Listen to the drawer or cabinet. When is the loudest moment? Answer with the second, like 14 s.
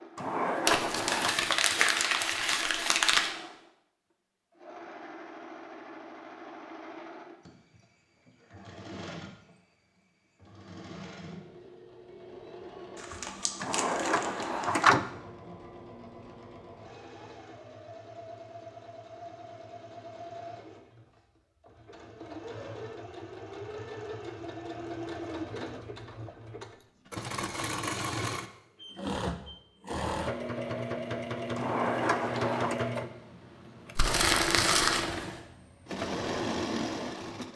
15 s.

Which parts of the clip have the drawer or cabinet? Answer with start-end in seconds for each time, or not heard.
0.1-1.4, 13.6-15.1, 31.6-32.8.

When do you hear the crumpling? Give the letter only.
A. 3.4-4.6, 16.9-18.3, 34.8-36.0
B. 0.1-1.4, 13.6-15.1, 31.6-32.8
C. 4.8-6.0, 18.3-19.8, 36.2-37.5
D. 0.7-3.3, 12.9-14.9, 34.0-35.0
D.